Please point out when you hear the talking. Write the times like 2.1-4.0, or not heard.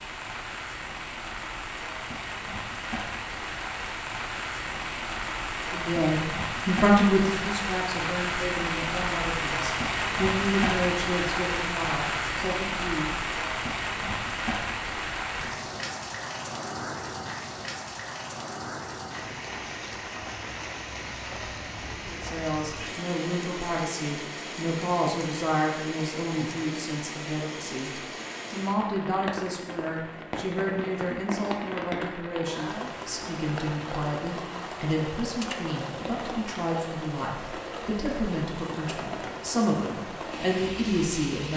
5.7-13.1, 22.1-41.5.